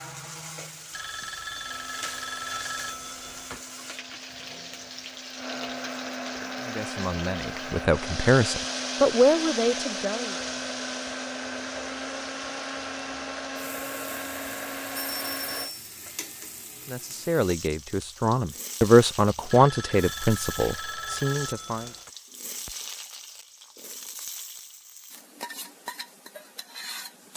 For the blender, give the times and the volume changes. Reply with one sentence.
You can hear the blender from 1.6 to 15.7 s, getting louder.